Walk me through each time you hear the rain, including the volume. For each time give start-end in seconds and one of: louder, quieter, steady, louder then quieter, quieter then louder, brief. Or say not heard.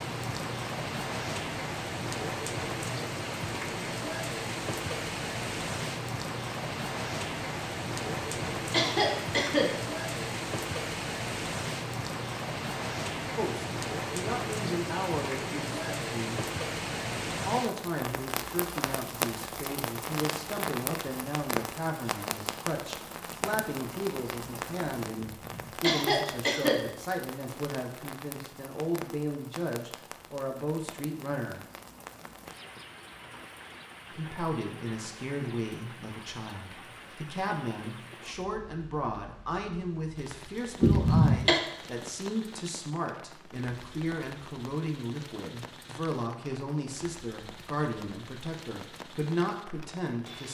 0.0-50.4 quieter.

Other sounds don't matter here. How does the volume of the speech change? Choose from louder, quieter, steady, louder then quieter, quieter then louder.
steady.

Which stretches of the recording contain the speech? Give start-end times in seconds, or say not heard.
13.3-16.4, 17.4-31.6, 34.1-50.4.